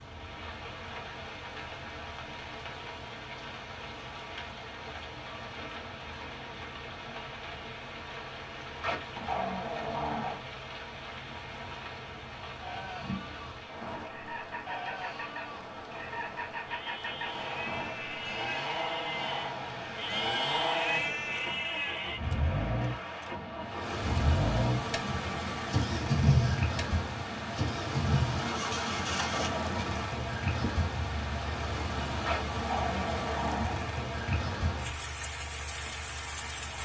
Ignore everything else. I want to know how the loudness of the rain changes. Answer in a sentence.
The volume of the rain goes up.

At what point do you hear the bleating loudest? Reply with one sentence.
The volume of the bleating peaks at 21 seconds.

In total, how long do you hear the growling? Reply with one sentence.
You can hear the growling for 3 seconds altogether.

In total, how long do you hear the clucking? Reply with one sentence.
You can't hear the clucking here.